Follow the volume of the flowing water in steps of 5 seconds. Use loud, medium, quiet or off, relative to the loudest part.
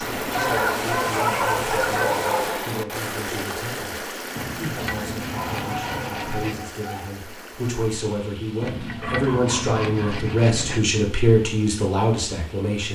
loud, medium, quiet.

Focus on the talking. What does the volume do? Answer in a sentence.
The loudness of the talking goes up.